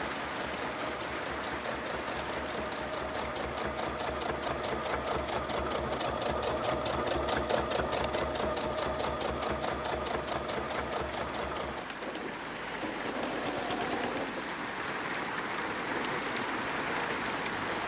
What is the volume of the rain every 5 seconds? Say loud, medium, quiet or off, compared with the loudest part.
medium, medium, medium, loud.